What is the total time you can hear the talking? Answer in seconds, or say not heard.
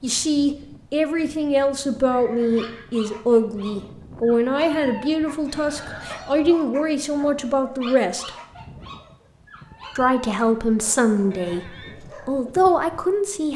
12 s.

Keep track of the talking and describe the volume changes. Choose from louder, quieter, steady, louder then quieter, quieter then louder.
steady.